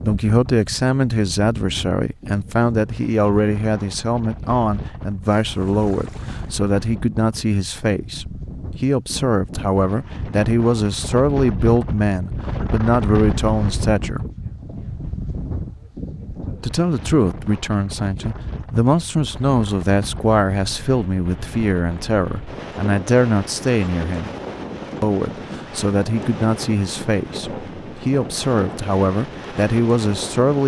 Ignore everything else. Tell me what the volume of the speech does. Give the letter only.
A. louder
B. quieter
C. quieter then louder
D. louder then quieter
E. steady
E.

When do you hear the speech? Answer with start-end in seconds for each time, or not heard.
0.0-14.2, 16.6-24.4, 25.0-30.6.